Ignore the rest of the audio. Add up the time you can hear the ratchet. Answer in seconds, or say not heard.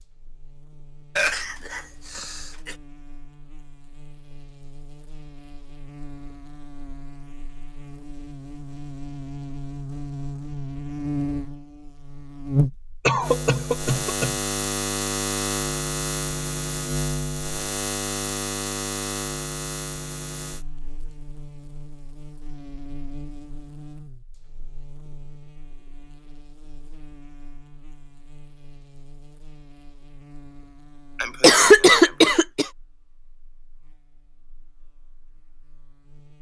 not heard.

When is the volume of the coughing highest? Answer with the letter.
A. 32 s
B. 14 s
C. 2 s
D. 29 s
A.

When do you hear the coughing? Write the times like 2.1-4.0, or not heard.
1.1-2.8, 13.1-14.4, 31.1-32.7.